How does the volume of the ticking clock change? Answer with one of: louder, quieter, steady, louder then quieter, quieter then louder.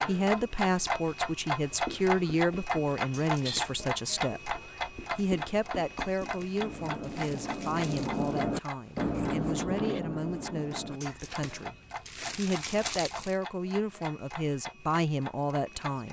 quieter.